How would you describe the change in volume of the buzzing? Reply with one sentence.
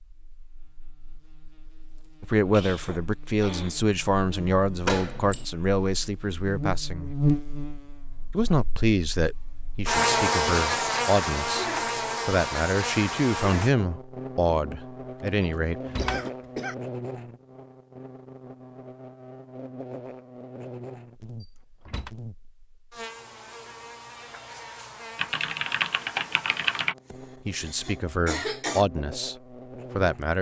The volume of the buzzing goes up, then down.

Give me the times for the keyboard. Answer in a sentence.
You can hear the keyboard from 25.1 to 26.9 s.